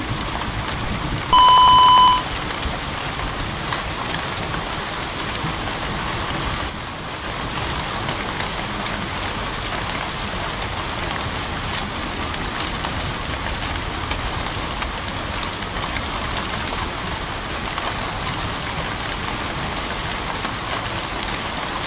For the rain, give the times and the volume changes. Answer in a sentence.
You can hear the rain from 0.0 to 21.8 s, at a steady volume.